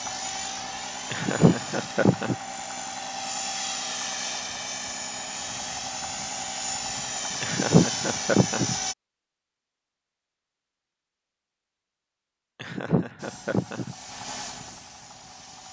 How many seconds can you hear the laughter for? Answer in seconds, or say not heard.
4 s.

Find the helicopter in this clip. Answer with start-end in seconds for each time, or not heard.
0.0-8.9, 13.2-15.6.